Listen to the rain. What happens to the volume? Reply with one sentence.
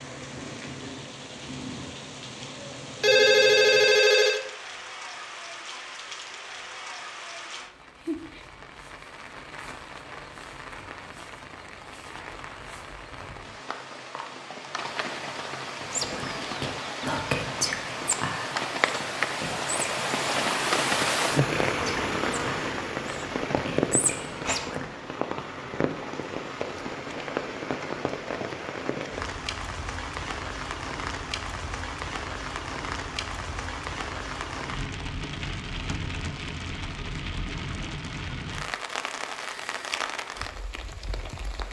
The volume of the rain goes up, then down.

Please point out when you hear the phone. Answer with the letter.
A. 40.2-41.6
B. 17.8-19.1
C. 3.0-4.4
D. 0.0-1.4
C.